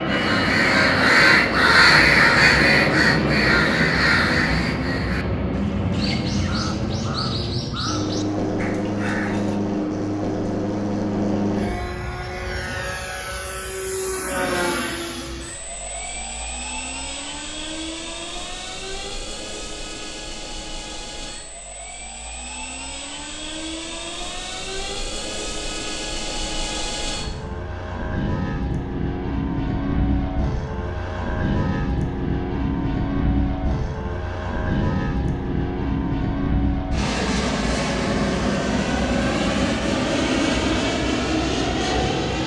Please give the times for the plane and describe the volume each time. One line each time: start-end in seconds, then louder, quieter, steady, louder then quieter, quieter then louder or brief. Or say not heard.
0.0-42.4 quieter then louder.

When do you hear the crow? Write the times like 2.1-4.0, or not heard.
0.1-9.6.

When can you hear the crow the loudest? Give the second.
2 s.